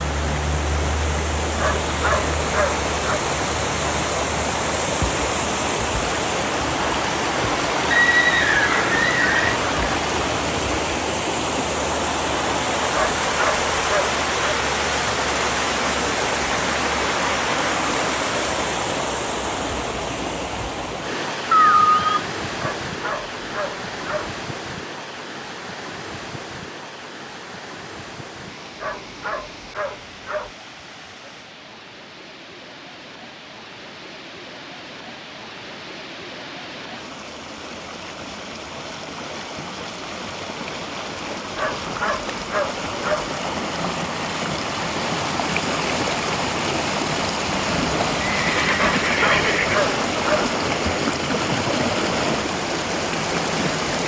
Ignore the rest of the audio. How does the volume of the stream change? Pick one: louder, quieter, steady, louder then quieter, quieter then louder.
quieter then louder.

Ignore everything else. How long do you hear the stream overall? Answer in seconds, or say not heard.
54 s.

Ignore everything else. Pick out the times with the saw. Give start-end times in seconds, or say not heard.
not heard.